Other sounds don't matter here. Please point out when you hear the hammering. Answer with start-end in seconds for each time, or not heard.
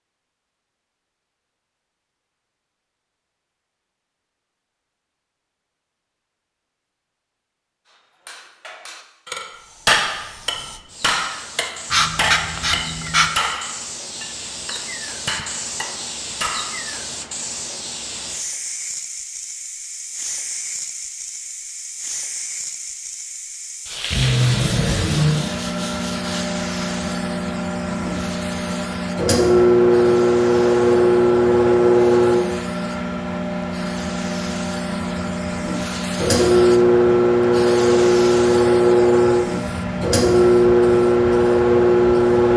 7.8-16.9.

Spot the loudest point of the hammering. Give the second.
10 s.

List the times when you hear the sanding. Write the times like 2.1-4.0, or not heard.
11.9-13.3, 23.9-26.6.